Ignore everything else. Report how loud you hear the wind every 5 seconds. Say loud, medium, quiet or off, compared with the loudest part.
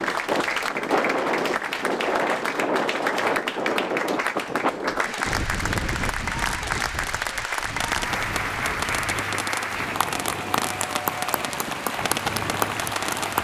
loud, medium, quiet.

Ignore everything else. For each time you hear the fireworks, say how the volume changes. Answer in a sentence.
The fireworks can be heard from 6.2 to 13.4 s, getting louder.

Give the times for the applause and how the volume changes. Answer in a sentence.
You can hear the applause from 0.0 to 13.4 s, at a steady volume.